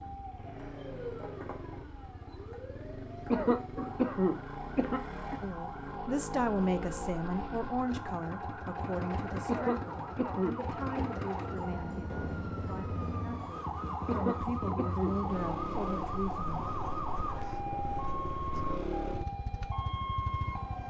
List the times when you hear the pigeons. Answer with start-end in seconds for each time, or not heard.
not heard.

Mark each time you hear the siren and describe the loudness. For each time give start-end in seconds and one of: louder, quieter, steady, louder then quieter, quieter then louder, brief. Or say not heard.
0.0-20.8 louder.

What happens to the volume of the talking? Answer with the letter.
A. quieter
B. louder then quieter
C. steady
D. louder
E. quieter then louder
E.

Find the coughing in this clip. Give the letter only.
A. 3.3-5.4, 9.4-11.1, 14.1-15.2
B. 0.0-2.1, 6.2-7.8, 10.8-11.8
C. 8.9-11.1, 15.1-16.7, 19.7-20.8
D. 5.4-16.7
A.